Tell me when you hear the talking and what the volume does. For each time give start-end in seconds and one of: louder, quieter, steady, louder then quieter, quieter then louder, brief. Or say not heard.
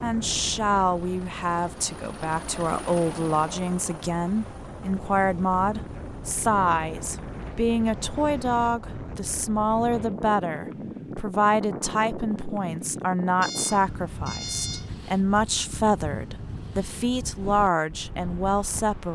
0.0-19.1 steady.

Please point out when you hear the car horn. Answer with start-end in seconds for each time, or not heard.
13.4-14.9.